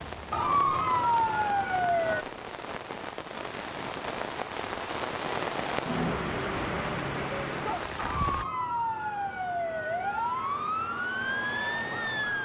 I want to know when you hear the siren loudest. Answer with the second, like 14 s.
1 s.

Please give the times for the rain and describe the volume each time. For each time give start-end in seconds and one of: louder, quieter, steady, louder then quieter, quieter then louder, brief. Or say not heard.
0.0-8.4 louder.